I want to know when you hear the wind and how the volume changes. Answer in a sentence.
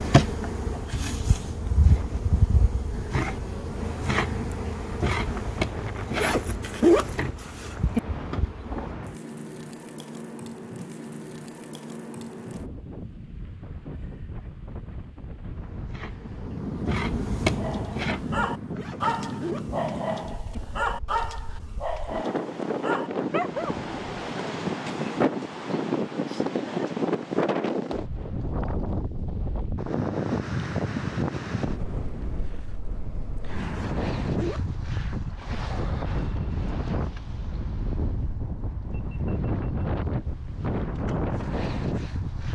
You can hear the wind from 0.0 to 42.5 s, getting louder.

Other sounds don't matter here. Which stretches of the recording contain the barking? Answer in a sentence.
You can hear the barking from 17.6 to 24.4 s.